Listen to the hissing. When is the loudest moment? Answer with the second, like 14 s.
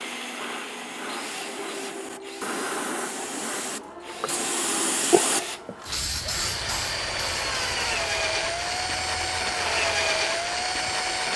5 s.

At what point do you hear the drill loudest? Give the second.
10 s.